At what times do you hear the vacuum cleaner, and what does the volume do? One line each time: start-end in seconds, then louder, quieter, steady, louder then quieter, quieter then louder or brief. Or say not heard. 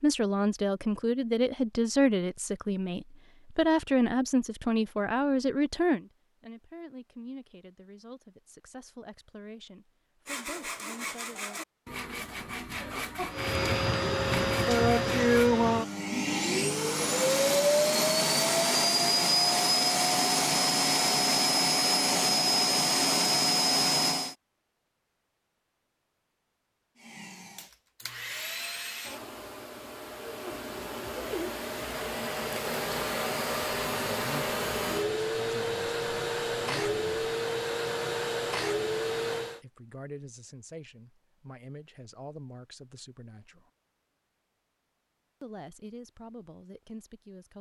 13.3-24.4 steady
27.0-39.6 louder.